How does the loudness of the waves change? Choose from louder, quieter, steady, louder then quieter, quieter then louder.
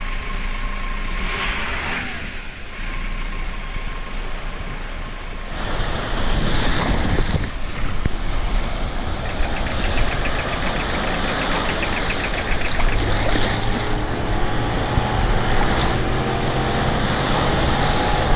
louder.